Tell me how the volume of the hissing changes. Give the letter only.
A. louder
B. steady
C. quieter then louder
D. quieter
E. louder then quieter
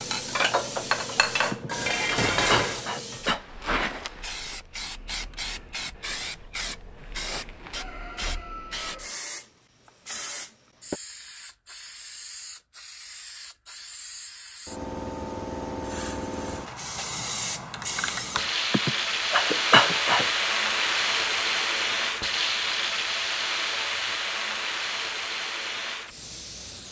A.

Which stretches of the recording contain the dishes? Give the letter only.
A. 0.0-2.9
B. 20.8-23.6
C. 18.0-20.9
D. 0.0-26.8
A.